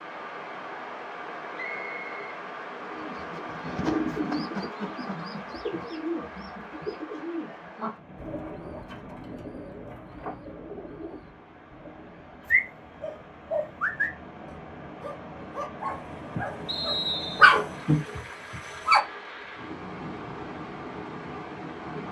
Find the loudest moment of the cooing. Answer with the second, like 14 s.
4 s.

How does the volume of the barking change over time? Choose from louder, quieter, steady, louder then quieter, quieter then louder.
quieter then louder.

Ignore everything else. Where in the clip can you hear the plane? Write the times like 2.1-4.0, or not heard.
not heard.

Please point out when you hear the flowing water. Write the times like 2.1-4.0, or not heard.
0.0-22.0.